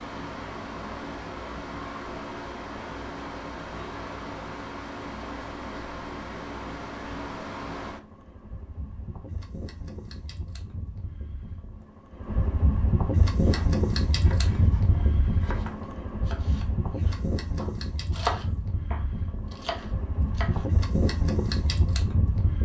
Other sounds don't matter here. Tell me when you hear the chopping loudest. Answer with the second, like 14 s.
18 s.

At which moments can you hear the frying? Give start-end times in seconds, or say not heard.
not heard.